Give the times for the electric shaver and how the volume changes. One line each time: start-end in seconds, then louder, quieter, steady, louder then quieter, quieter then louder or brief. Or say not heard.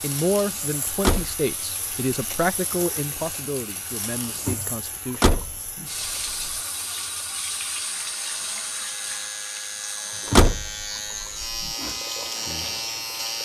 0.0-13.4 quieter then louder.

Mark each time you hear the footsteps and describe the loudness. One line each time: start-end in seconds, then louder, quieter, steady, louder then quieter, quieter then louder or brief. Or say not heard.
not heard.